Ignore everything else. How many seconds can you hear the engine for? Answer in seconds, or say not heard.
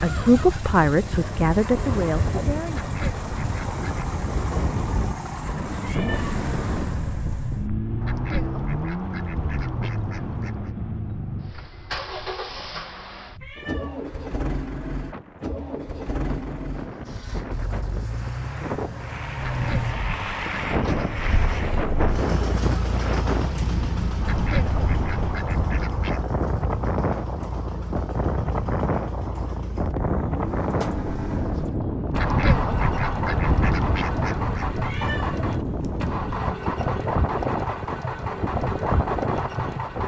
40 s.